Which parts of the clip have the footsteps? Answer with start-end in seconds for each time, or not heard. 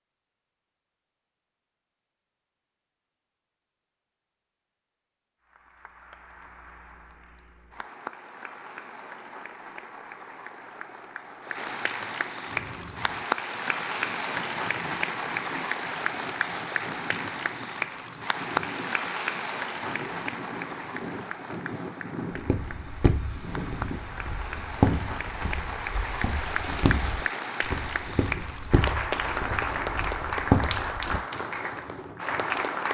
22.3-31.2.